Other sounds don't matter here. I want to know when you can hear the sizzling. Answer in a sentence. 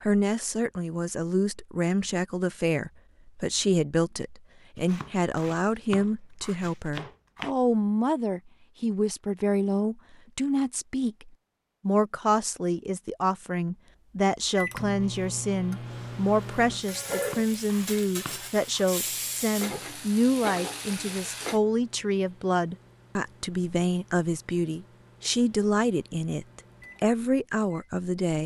You can hear the sizzling from 15.8 to 21.6 s.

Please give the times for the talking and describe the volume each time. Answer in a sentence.
You can hear the talking from 0.0 to 28.4 s, at a steady volume.